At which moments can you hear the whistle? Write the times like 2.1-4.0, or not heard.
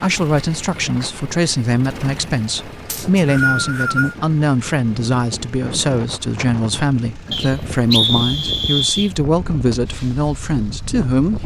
2.9-4.2, 7.3-9.1.